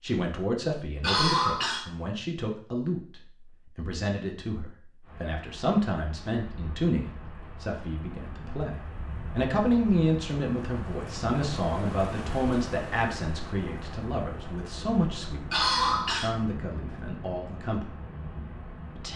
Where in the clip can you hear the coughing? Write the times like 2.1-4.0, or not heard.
1.0-1.9, 15.5-16.3.